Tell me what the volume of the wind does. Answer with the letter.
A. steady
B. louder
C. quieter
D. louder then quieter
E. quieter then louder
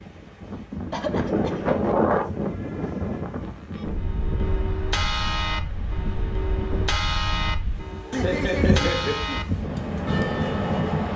E.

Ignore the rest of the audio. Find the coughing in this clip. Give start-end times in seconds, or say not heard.
0.9-1.6, 8.1-9.4.